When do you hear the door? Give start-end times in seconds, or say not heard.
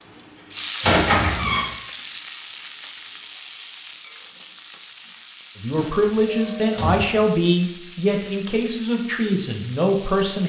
0.8-1.6, 5.8-7.0.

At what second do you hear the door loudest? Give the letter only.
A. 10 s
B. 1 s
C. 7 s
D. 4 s
B.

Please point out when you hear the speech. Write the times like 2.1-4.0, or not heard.
5.5-10.4.